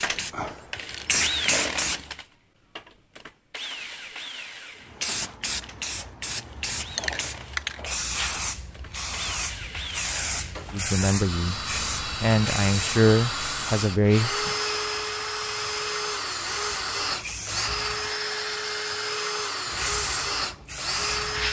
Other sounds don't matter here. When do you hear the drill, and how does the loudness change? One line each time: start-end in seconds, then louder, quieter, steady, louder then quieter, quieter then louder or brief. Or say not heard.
0.0-21.4 quieter then louder.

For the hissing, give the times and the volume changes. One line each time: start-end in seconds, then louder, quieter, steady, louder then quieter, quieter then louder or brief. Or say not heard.
0.0-2.0 brief
5.0-18.1 quieter
19.6-21.4 brief.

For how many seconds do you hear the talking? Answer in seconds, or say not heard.
4 s.